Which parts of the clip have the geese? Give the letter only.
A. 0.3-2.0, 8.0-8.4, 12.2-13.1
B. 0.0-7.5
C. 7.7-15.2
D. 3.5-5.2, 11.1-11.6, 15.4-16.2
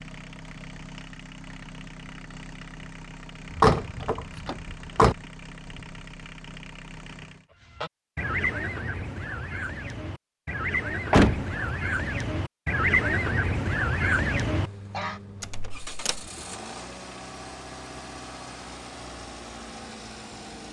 C.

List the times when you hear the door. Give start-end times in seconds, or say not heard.
3.5-5.2, 11.1-11.6, 15.4-16.2.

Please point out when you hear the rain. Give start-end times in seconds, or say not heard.
not heard.